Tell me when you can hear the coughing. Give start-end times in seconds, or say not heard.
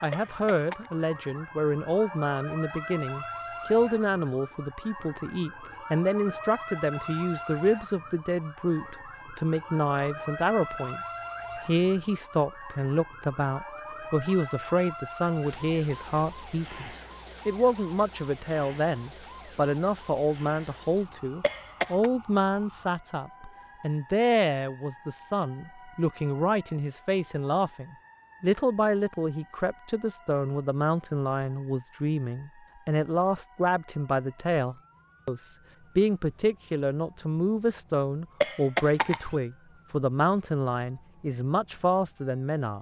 0.1-0.9, 21.4-22.1, 38.4-39.4.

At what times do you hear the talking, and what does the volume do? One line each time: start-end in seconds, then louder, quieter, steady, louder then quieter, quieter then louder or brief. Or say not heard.
0.0-11.0 steady
11.7-42.7 steady.